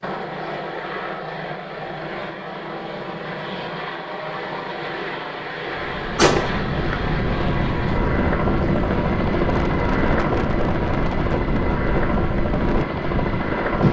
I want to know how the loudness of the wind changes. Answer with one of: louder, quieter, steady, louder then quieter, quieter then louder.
steady.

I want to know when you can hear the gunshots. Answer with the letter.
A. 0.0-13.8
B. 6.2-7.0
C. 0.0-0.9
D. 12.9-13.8
B.